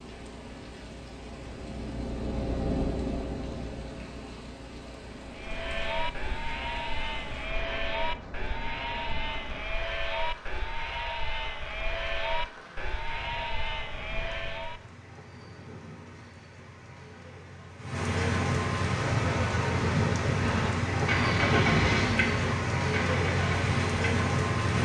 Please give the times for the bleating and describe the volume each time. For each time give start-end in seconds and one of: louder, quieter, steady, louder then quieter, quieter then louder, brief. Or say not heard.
5.2-14.8 steady.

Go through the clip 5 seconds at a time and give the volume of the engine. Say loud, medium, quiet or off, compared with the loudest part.
medium, quiet, off, off, loud.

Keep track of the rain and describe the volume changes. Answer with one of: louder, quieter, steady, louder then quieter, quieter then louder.
louder.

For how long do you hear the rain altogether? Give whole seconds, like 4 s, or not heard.
25 s.